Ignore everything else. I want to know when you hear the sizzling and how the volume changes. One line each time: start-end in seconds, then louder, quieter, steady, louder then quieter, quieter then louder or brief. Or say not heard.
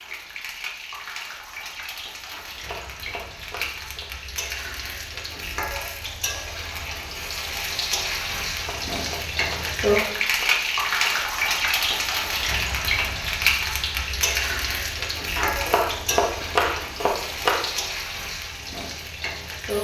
0.0-19.8 louder then quieter.